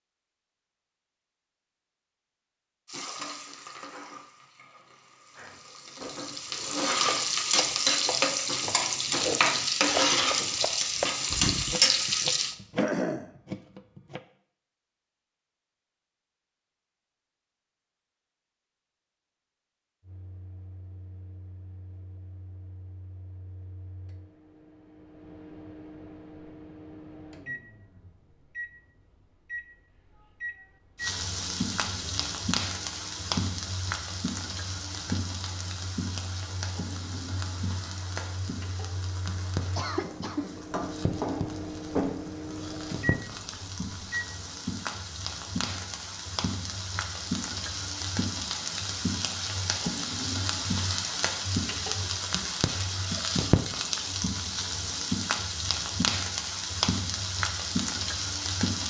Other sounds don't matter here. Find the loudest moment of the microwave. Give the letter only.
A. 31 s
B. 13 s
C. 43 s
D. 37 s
C.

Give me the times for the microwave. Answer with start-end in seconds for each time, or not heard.
20.0-44.2.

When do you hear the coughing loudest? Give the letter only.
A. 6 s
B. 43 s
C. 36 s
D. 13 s
D.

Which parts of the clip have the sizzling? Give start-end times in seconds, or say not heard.
2.9-12.6, 31.0-58.8.